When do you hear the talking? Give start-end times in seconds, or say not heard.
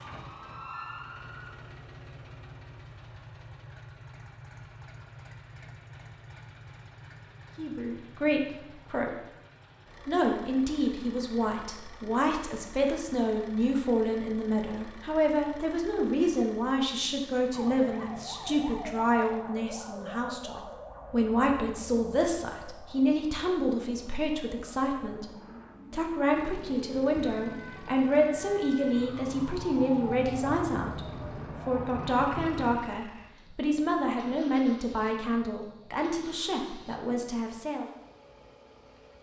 7.5-9.1, 10.1-25.3, 25.9-31.1, 31.6-37.9.